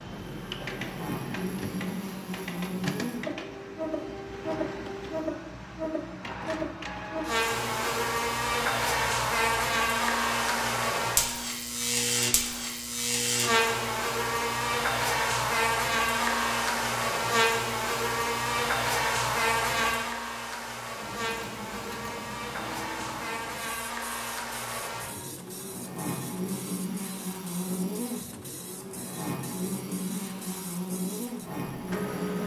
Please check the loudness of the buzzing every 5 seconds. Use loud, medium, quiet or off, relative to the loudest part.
medium, loud, loud, loud, medium, medium, medium.